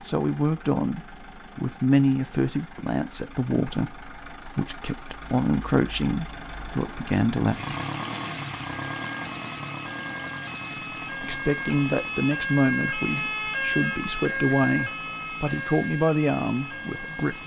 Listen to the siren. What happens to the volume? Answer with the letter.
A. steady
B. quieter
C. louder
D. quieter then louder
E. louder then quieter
E.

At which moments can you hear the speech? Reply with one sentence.
You can hear the speech from 0.0 to 7.8 s and from 10.7 to 17.4 s.